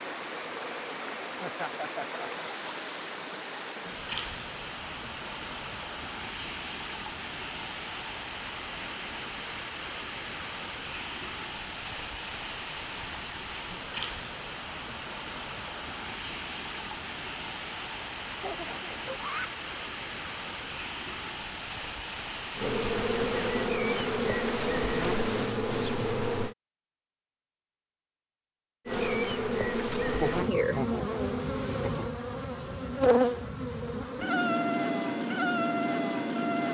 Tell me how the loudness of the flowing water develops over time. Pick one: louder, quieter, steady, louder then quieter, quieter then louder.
steady.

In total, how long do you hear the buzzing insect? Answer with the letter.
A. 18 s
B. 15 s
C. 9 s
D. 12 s
D.